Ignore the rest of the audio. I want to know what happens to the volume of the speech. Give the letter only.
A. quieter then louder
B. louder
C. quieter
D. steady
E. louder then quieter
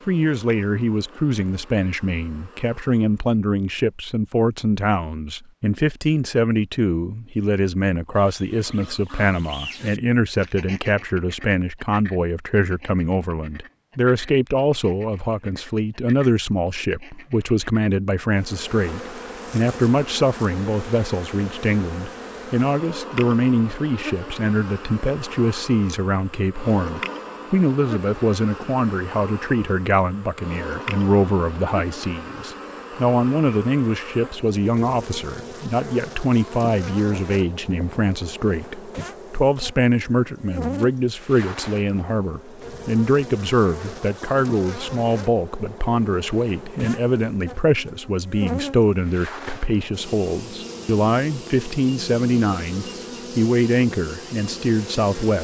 D.